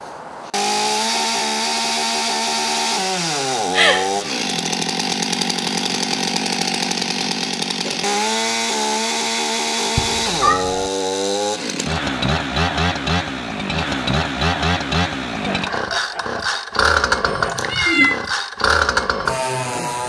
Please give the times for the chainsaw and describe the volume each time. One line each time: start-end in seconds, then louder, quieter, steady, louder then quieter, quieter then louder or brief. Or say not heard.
0.0-20.0 steady.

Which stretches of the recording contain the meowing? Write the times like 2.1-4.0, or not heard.
3.7-4.3, 9.9-10.9, 17.2-18.1.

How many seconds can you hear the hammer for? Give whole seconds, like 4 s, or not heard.
not heard.